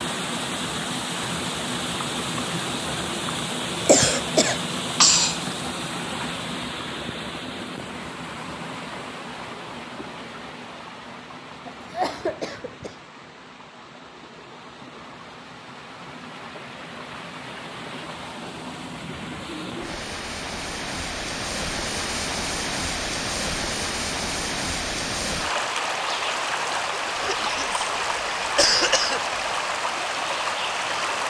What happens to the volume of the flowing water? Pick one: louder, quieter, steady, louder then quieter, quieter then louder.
quieter then louder.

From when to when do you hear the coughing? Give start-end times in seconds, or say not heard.
3.8-5.4, 11.7-12.9, 27.1-29.4.